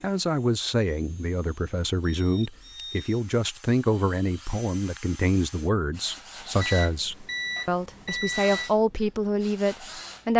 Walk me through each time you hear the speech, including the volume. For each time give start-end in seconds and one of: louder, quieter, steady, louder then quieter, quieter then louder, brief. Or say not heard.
0.0-10.3 steady.